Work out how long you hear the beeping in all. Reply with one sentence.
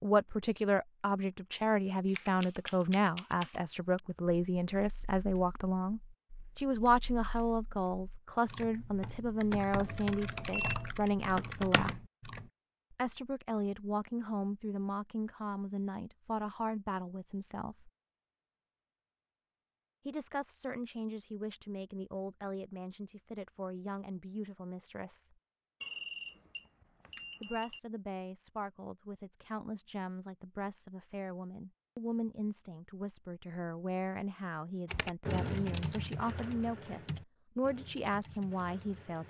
The beeping can be heard for 3 seconds in total.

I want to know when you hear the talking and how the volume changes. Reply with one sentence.
You can hear the talking from 0.0 to 11.9 s, at a steady volume; from 12.9 to 17.9 s, at a steady volume; from 20.1 to 25.4 s, at a steady volume; and from 27.4 to 39.2 s, getting louder.